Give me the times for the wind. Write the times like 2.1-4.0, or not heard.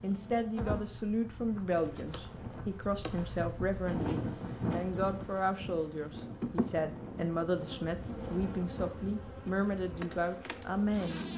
0.0-9.2.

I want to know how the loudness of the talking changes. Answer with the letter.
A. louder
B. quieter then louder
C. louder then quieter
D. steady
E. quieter
D.